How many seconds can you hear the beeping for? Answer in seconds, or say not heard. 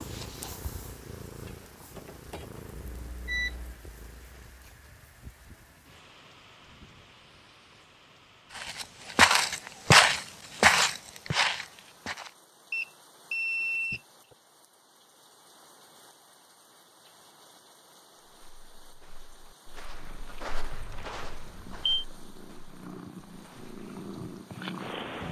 4 s.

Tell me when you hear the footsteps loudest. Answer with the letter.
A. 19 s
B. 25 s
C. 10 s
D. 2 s
C.